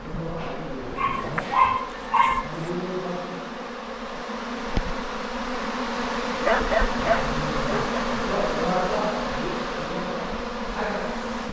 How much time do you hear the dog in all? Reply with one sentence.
The dog can be heard for 3 seconds in total.